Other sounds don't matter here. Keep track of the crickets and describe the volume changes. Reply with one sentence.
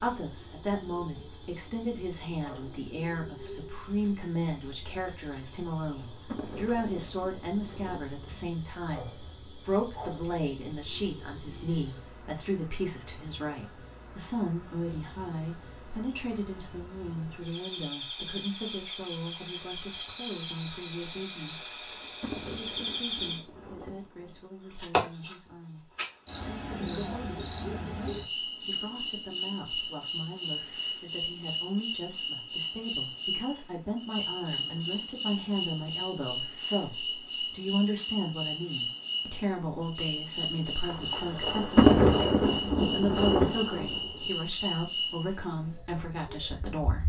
The loudness of the crickets goes up.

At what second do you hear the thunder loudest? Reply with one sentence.
The loudest moment of the thunder is at 42 seconds.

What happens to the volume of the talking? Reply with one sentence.
The loudness of the talking goes down, then up.